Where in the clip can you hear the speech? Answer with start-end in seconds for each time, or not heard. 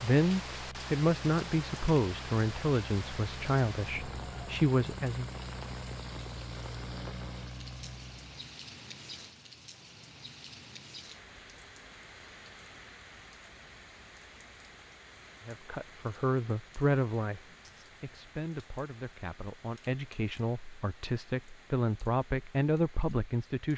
0.0-5.3, 15.4-23.7.